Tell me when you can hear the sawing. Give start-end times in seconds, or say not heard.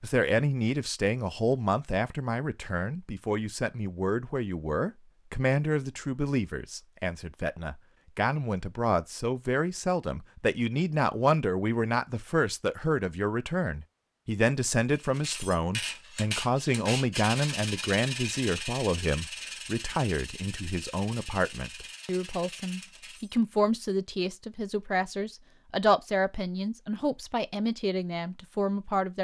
14.9-23.4.